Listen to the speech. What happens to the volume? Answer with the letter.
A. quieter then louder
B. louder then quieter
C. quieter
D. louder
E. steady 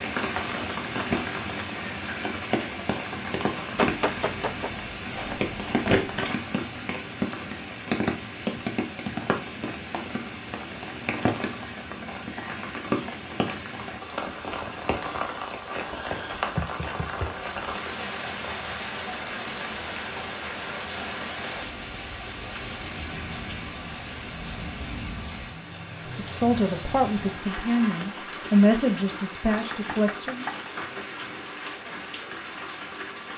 B.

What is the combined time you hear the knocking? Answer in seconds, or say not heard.
3 s.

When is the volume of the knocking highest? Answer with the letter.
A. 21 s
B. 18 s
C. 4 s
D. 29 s
C.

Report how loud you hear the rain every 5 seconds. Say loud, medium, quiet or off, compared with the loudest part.
loud, loud, loud, loud, medium, medium, medium.